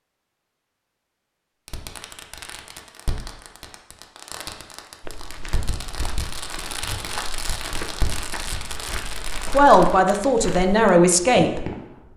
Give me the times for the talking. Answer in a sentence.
The talking can be heard from 9.5 to 11.7 s.